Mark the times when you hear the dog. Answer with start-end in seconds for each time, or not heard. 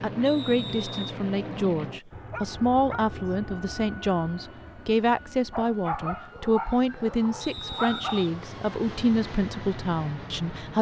2.3-3.0, 5.5-8.3.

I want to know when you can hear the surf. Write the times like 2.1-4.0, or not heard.
not heard.